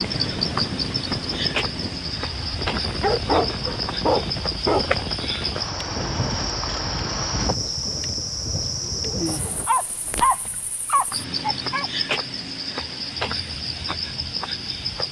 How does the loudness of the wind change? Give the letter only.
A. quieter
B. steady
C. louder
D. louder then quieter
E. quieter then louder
B.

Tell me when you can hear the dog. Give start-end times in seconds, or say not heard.
3.0-4.8, 9.7-11.9.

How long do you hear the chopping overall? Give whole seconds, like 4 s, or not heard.
not heard.